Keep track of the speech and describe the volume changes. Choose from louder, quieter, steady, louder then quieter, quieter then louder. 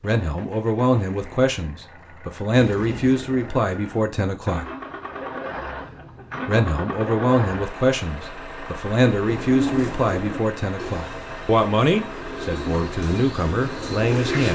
steady.